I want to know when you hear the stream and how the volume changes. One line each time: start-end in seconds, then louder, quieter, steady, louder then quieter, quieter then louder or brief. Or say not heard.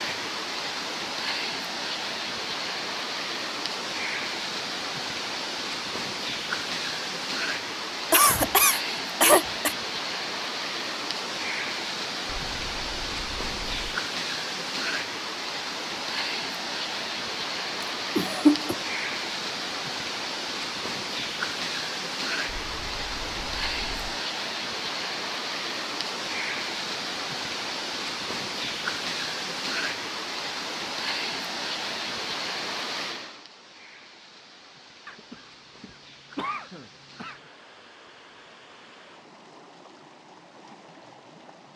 0.0-41.7 quieter.